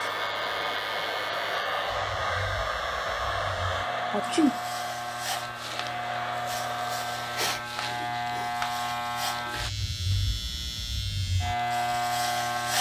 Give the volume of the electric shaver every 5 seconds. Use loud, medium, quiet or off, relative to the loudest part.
medium, loud, loud.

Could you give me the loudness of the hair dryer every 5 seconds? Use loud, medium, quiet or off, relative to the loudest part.
loud, medium, off.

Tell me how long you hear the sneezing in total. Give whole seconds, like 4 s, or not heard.
2 s.